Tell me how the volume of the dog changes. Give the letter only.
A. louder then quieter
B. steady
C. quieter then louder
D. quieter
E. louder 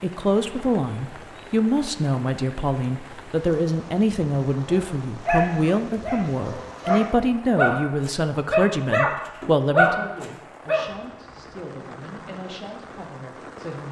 E.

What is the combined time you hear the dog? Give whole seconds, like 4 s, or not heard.
6 s.